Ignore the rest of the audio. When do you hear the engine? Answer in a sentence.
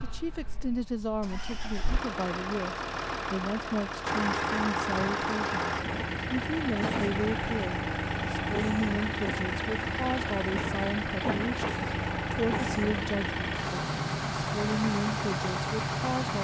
The engine can be heard from 0.0 to 16.3 s.